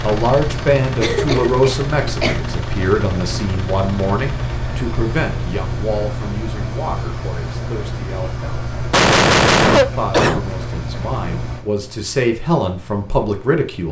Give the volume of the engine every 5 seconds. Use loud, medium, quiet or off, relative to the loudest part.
loud, loud, medium.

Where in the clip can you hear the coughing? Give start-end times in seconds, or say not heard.
1.0-2.5, 8.9-10.4.